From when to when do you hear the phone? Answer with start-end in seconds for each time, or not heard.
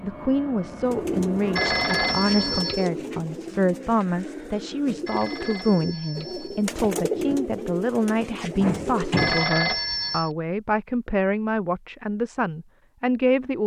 1.6-2.9, 5.0-6.7, 9.2-10.3.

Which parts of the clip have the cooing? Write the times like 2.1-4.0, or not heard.
0.8-9.3.